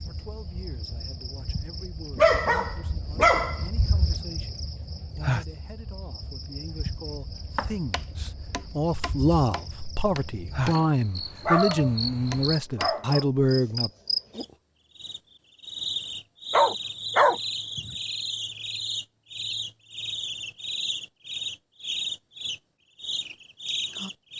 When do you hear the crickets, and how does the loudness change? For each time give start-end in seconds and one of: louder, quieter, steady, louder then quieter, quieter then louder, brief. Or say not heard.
0.0-24.3 louder.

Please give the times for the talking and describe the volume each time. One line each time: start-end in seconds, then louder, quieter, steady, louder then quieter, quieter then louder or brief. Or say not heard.
0.0-13.9 louder.